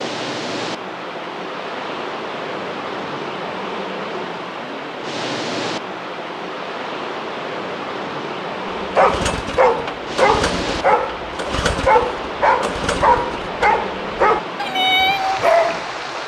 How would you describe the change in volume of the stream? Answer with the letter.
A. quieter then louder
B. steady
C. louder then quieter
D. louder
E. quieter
B.